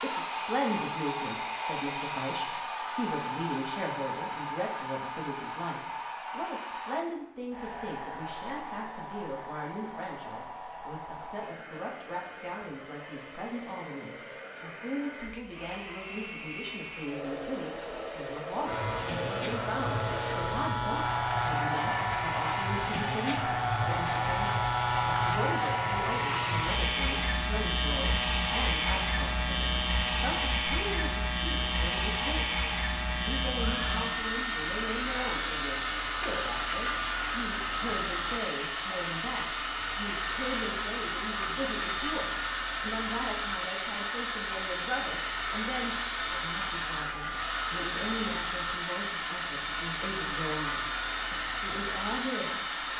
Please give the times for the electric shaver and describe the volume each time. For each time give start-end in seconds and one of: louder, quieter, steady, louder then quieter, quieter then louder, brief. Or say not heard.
18.6-52.9 quieter.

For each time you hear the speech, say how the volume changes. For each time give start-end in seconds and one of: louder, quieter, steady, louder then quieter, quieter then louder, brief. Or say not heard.
0.0-52.6 steady.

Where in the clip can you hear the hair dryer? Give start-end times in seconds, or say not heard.
0.0-52.9.